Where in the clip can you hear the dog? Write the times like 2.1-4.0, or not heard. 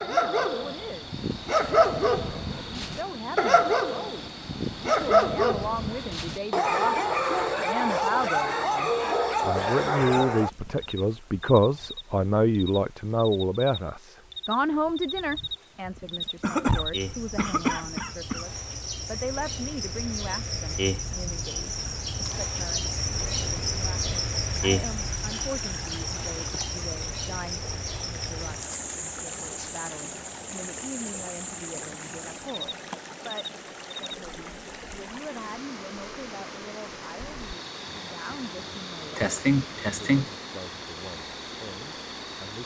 0.0-10.5.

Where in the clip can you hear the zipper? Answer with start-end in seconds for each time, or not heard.
not heard.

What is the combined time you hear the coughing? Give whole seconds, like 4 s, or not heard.
4 s.